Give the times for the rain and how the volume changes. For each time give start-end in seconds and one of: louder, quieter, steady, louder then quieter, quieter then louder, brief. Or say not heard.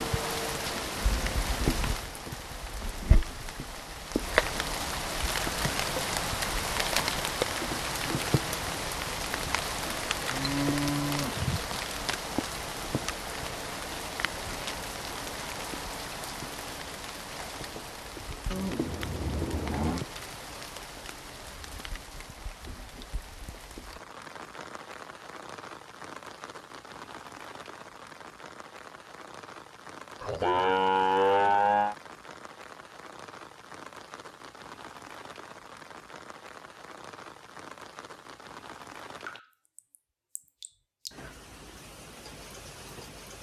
0.0-43.3 quieter.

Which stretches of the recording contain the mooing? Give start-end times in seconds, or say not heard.
10.3-11.8, 18.5-20.1, 30.2-31.9.